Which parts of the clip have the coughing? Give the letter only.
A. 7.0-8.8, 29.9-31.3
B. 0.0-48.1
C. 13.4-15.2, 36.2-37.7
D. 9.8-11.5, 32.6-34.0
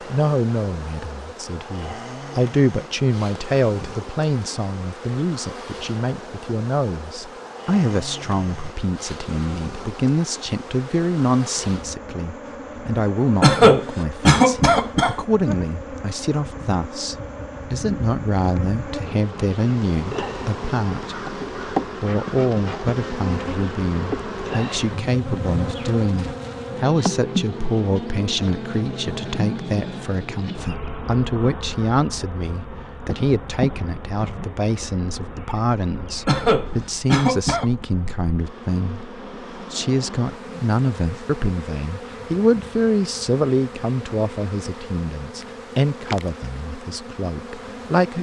C.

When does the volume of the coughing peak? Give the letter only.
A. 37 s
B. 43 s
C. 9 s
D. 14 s
D.